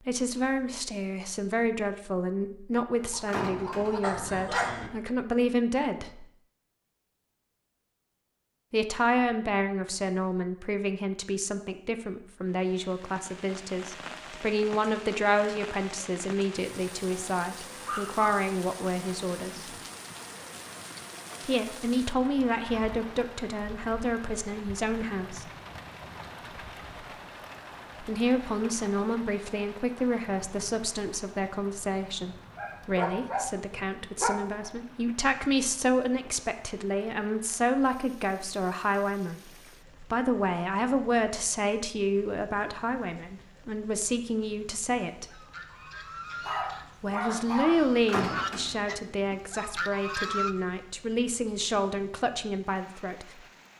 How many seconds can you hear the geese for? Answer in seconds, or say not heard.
5 s.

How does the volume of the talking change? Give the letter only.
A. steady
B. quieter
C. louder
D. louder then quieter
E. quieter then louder
A.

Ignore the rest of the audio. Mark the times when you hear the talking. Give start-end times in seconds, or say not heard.
0.1-6.2, 8.7-19.8, 21.4-25.5, 28.0-45.4, 47.0-53.4.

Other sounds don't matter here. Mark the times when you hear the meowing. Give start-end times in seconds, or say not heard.
not heard.